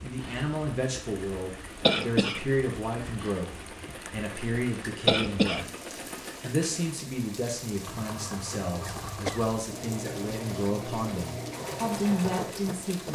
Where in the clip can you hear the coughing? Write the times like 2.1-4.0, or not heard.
1.8-2.4, 5.0-5.7, 8.8-9.5.